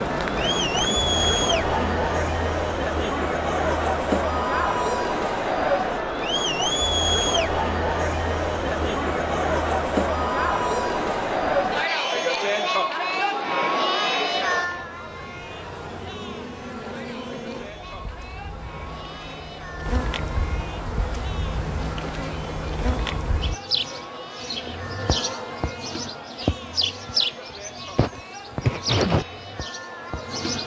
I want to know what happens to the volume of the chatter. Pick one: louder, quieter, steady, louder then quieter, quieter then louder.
quieter.